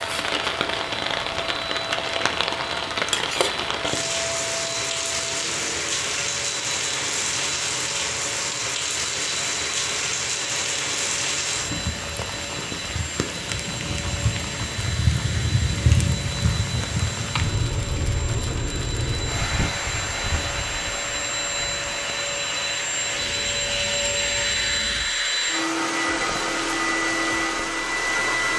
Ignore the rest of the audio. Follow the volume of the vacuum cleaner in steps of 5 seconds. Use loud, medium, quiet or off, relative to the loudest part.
medium, medium, medium, medium, loud, loud.